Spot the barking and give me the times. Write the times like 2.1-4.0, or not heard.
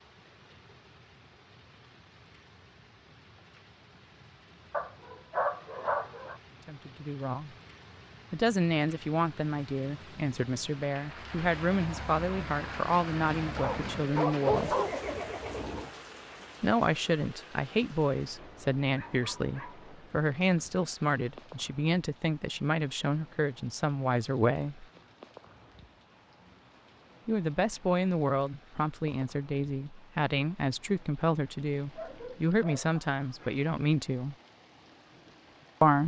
4.7-6.4, 13.6-14.9, 18.9-19.9, 31.8-33.6.